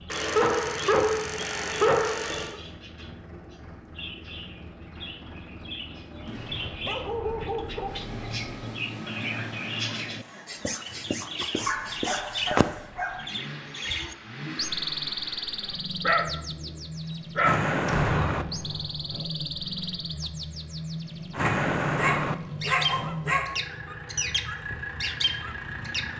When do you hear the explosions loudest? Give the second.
18 s.